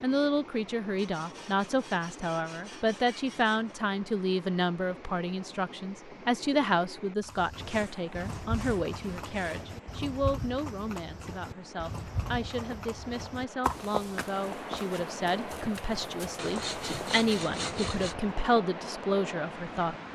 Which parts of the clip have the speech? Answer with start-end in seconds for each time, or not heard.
0.0-20.1.